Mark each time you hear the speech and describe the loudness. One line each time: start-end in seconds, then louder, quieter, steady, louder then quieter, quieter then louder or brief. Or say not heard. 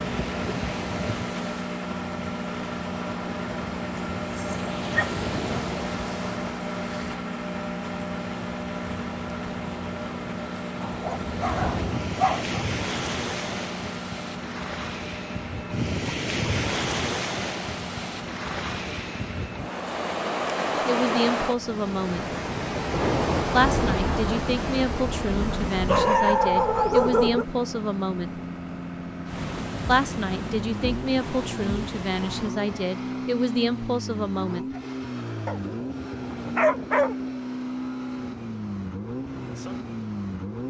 20.9-22.4 brief
23.5-28.4 steady
29.9-34.7 steady.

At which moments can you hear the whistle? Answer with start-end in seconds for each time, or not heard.
not heard.